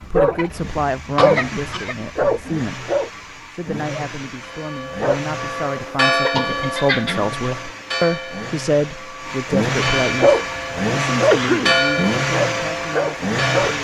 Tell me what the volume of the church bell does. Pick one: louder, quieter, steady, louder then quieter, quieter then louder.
quieter then louder.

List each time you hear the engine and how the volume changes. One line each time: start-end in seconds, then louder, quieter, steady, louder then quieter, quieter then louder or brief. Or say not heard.
0.0-13.7 louder.